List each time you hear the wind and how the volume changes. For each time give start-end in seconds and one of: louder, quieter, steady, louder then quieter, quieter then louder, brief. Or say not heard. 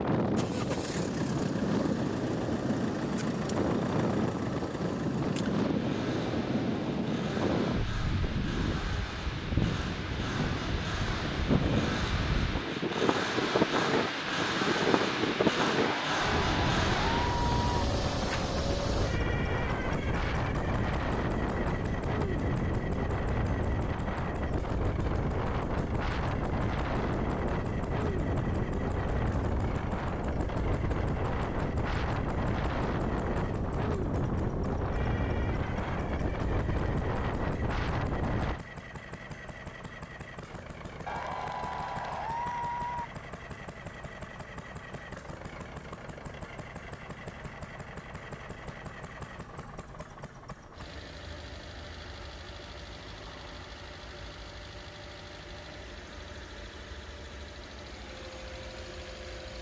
0.0-38.6 steady.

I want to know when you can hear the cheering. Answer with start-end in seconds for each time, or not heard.
15.8-17.9, 41.0-43.0.